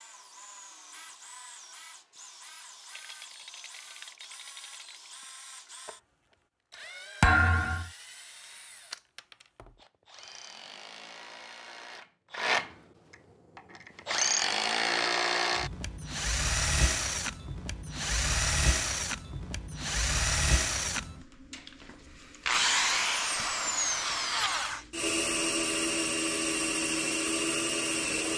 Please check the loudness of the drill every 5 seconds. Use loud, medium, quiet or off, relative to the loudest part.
quiet, quiet, loud, loud, loud, loud.